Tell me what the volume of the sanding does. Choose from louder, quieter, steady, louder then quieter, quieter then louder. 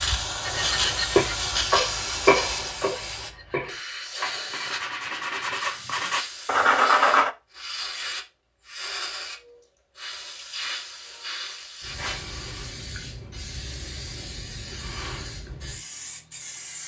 quieter then louder.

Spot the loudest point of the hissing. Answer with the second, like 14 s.
1 s.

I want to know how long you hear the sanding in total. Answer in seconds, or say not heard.
7 s.